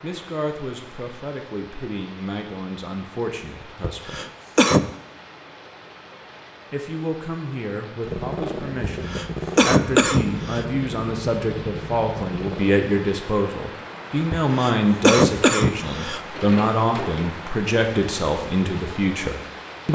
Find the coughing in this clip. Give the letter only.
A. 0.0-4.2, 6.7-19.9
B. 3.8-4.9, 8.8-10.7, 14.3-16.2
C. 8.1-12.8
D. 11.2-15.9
B.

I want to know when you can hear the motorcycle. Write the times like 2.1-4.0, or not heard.
8.1-12.8.